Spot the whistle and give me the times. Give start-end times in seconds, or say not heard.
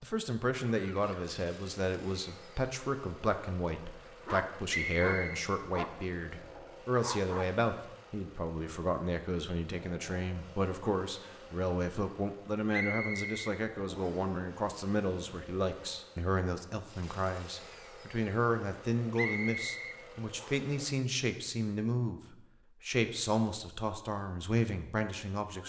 4.7-5.5, 12.7-14.3, 19.1-20.8.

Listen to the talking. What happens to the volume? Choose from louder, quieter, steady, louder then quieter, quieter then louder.
steady.